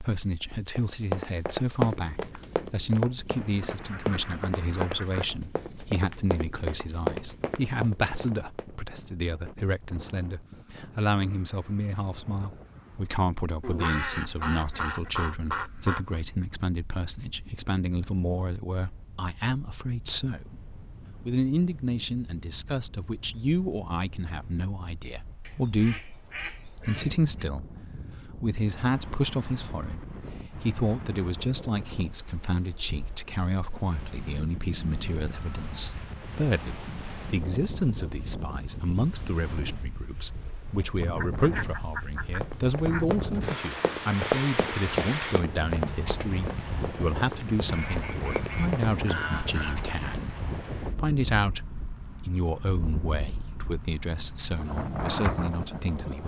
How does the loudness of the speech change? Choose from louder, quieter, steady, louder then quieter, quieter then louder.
steady.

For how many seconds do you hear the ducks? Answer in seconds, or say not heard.
11 s.